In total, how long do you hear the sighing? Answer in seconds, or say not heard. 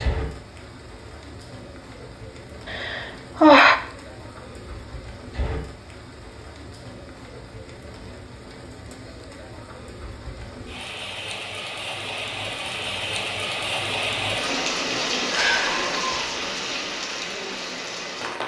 2 s.